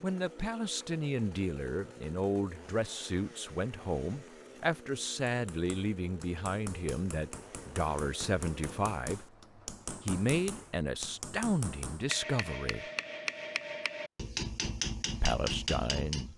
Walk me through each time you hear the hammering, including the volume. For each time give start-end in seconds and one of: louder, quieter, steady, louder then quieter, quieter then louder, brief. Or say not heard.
5.2-16.3 louder.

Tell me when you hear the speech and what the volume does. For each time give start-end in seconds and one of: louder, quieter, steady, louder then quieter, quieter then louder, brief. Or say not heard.
0.0-9.2 steady
10.1-12.8 brief
15.2-16.3 brief.